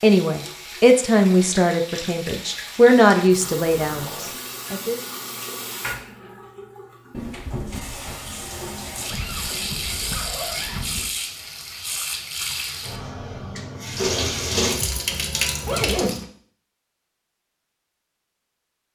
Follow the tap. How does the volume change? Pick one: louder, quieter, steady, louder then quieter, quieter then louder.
louder.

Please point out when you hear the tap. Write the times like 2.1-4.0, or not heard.
0.0-16.2.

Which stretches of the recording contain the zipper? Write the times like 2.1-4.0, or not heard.
3.2-4.5, 9.1-11.1, 15.7-16.2.